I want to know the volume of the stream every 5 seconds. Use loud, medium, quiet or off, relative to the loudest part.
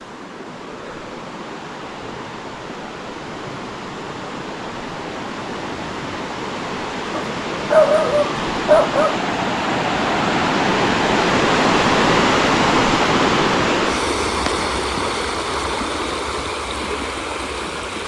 quiet, medium, loud, medium.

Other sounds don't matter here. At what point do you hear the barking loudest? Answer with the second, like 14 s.
8 s.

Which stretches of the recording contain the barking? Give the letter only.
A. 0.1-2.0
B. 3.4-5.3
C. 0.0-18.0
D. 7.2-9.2
D.